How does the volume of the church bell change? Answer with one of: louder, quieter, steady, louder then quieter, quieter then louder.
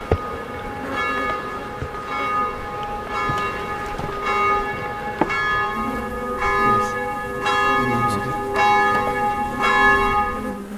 louder.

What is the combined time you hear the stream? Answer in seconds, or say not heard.
not heard.